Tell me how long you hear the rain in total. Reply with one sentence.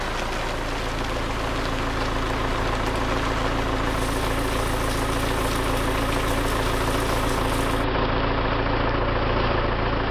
The rain can be heard for 10 seconds in total.